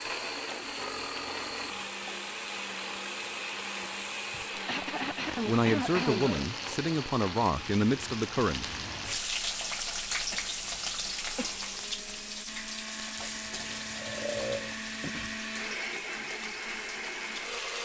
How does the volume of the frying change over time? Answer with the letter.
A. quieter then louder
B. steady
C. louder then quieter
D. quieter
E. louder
C.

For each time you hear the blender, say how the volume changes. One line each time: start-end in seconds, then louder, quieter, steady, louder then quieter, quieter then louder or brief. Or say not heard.
0.0-17.8 quieter then louder.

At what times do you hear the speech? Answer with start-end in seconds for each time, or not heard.
5.5-8.7.